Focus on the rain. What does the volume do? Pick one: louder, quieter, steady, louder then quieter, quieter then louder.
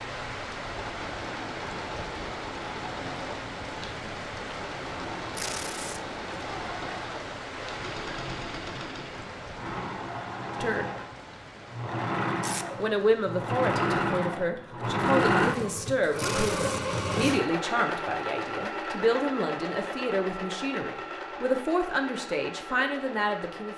quieter.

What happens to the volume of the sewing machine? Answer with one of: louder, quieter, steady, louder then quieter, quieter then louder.
louder then quieter.